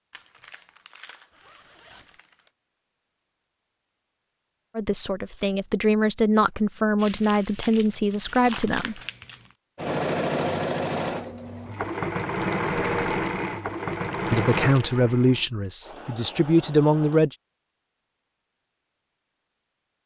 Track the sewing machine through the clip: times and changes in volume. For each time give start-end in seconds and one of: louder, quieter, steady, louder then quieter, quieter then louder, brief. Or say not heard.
9.8-17.2 quieter.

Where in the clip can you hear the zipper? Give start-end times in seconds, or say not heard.
1.3-2.2.